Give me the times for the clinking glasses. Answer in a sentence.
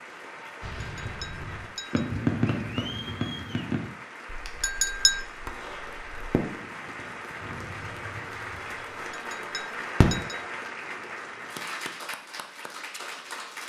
The clinking glasses can be heard from 0.8 to 2.0 s, from 4.6 to 5.2 s and from 9.1 to 10.4 s.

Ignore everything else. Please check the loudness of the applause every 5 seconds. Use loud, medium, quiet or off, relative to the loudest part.
medium, loud, loud.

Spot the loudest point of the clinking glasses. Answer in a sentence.
The volume of the clinking glasses peaks at 5 seconds.